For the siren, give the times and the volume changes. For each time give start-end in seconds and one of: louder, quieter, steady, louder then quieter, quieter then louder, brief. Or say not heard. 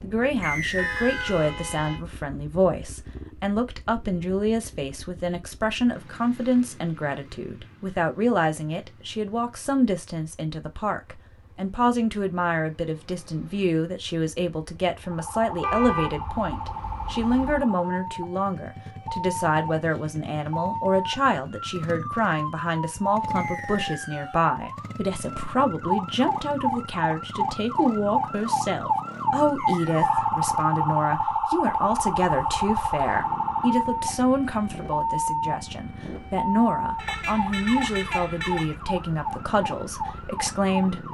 15.1-41.0 louder then quieter.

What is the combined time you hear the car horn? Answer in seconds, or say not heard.
5 s.